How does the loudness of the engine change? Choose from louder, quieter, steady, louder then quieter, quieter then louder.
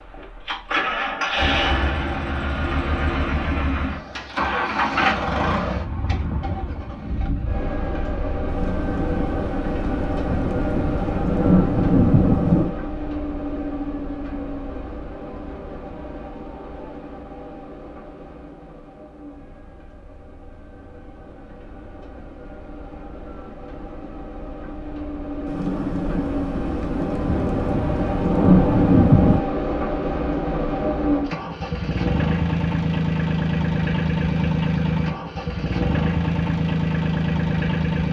quieter then louder.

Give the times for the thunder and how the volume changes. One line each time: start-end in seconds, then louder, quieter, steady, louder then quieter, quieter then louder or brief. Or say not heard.
8.4-12.8 louder
25.4-29.4 louder.